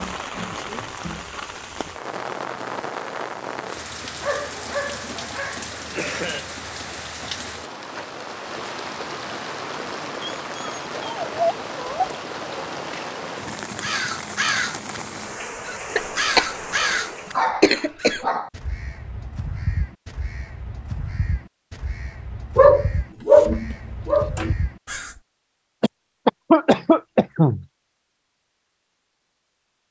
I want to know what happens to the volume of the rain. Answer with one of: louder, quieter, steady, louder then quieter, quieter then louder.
steady.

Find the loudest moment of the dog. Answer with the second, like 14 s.
23 s.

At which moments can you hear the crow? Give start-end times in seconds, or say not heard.
13.8-14.8, 15.6-17.4, 17.9-25.2.